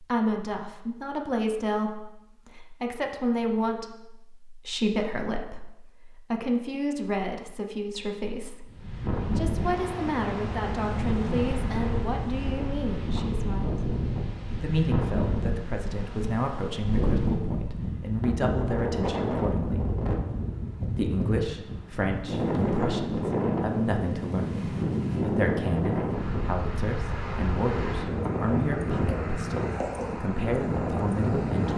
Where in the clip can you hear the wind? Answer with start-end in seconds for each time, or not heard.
8.7-31.7.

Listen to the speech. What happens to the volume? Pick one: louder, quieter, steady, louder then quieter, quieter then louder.
steady.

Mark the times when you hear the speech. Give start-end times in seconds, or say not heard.
0.0-8.7, 9.3-13.7, 14.6-19.9, 20.9-31.7.